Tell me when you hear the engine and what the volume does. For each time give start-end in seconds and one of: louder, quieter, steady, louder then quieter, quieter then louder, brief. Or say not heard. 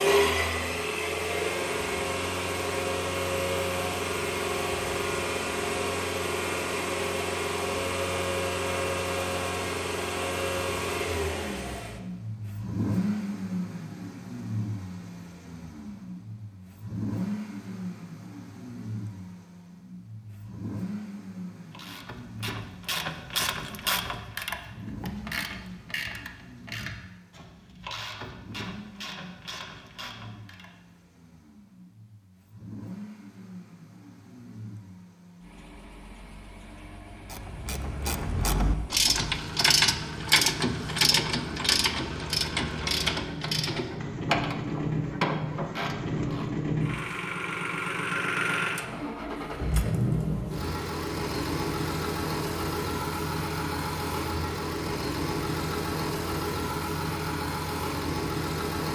0.0-58.9 quieter then louder.